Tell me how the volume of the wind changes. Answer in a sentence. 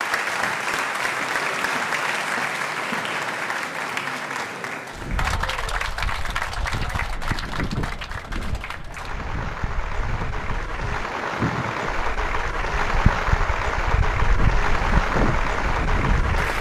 The loudness of the wind goes up.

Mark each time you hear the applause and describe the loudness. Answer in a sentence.
The applause can be heard from 0.0 to 16.5 s, getting quieter then louder.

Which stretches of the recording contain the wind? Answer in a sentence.
You can hear the wind from 5.0 to 16.5 s.